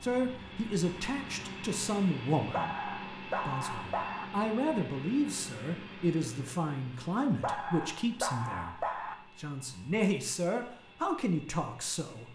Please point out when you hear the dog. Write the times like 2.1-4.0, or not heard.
2.5-4.2, 7.4-9.2.